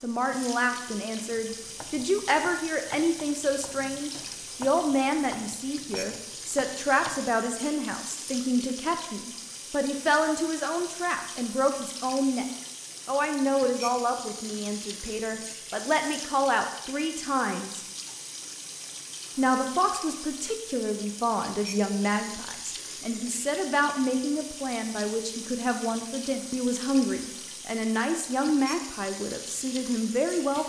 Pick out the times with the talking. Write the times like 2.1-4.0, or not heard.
0.0-12.4, 13.1-17.9, 19.4-30.6.